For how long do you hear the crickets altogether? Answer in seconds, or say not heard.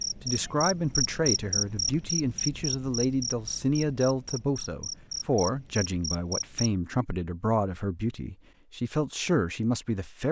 7 s.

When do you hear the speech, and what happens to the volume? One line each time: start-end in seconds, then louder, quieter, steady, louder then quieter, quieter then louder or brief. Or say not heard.
0.1-10.2 steady.